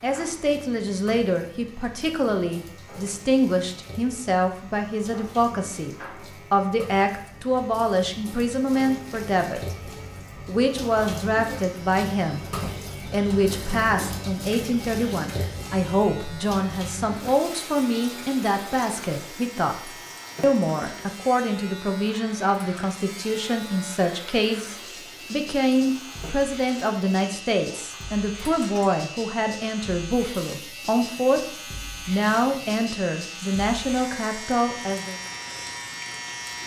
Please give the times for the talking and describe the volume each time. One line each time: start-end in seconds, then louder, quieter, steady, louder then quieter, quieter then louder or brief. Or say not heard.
0.0-35.2 steady.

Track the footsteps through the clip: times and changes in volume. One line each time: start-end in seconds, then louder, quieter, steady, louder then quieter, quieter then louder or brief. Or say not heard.
not heard.